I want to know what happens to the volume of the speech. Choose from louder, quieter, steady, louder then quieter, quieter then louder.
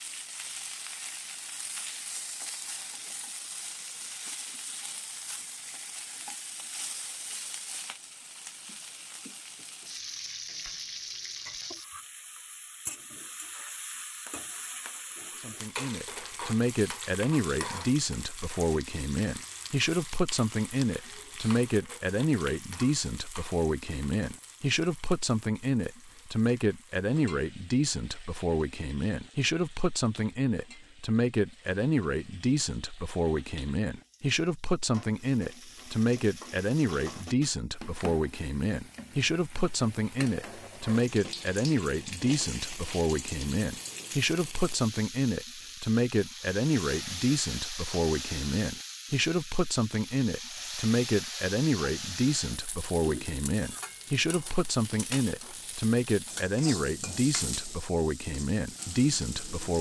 steady.